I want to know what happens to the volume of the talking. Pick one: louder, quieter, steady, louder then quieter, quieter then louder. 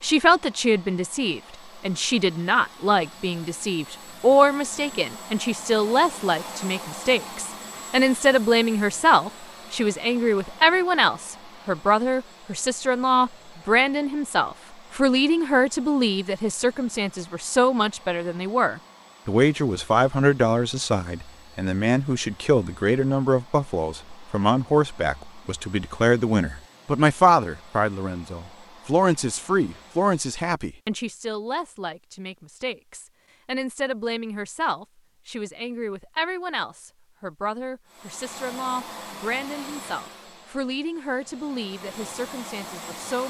quieter.